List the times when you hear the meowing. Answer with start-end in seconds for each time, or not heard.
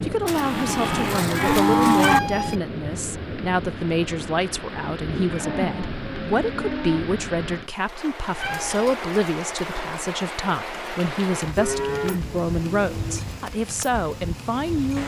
2.0-2.5, 8.4-8.9.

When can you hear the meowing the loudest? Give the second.
2 s.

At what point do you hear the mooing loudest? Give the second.
2 s.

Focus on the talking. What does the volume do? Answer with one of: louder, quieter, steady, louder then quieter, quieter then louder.
steady.